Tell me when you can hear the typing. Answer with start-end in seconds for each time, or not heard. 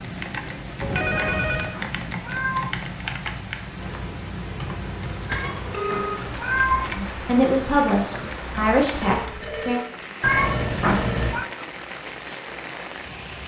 0.0-9.8.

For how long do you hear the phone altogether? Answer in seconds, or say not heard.
4 s.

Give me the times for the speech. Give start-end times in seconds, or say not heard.
7.0-9.8.